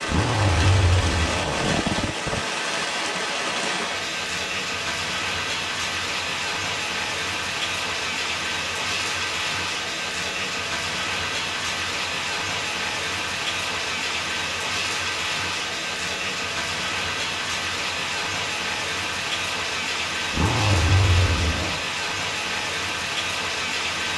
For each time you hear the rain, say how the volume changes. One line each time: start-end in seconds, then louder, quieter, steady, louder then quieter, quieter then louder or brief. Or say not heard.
0.0-24.1 steady.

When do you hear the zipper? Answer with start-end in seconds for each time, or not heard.
0.1-2.4, 20.3-21.9.